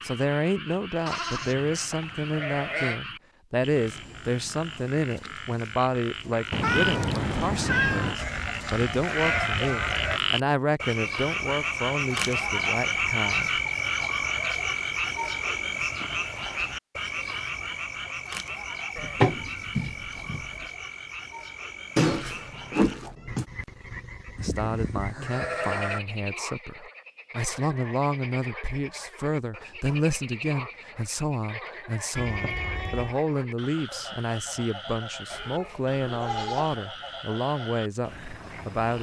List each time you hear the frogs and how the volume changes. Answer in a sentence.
You can hear the frogs from 0.0 to 38.9 s, getting louder then quieter.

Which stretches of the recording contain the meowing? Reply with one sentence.
The meowing can be heard from 6.5 to 8.2 s, from 21.9 to 23.4 s and from 32.1 to 33.1 s.